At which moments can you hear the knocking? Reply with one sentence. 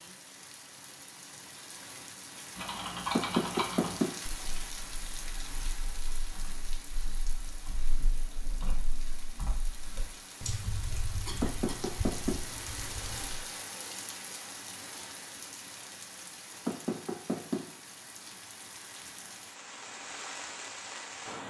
You can hear the knocking from 3.1 to 4.2 s, from 11.4 to 12.4 s and from 16.6 to 17.6 s.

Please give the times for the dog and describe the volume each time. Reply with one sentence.
You can't hear the dog here.